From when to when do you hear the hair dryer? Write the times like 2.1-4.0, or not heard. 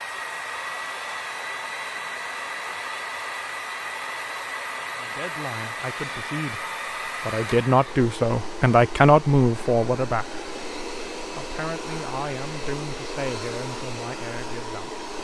0.0-15.1.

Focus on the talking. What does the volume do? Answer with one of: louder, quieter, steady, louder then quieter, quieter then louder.
louder then quieter.